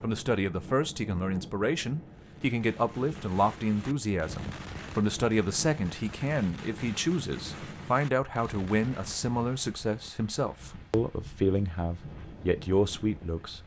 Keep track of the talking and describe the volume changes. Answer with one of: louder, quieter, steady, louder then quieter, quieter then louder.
steady.